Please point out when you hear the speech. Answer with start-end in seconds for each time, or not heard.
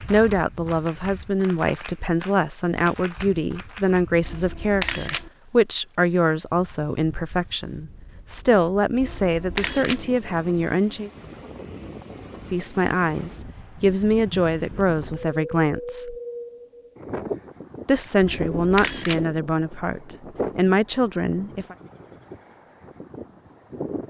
0.1-11.1, 12.5-16.1, 17.9-21.8.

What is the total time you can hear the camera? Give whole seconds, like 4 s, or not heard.
3 s.